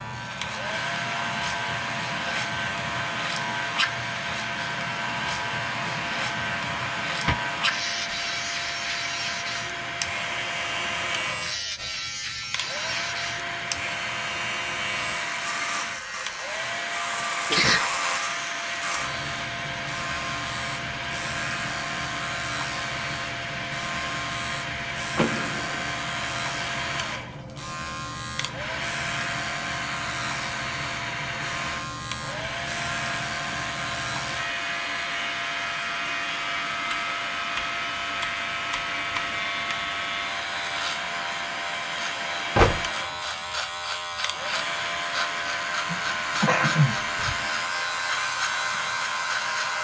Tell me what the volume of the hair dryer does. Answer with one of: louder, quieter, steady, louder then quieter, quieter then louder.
steady.